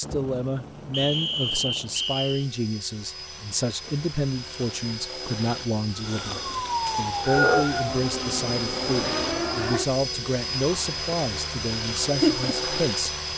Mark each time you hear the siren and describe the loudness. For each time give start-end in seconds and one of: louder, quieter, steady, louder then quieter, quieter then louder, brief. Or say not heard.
6.0-12.8 quieter then louder.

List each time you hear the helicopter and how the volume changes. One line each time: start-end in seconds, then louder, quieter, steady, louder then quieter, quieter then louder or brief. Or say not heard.
0.0-13.3 louder.